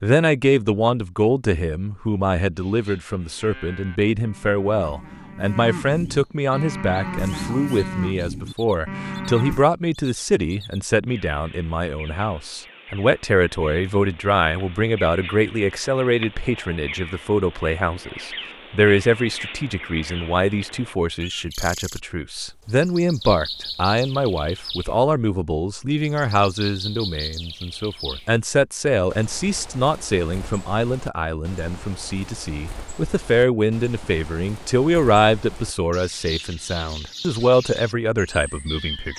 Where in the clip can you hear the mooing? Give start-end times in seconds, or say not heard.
2.5-9.7.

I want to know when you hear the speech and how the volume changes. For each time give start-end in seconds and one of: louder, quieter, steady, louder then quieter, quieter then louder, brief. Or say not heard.
0.0-39.1 steady.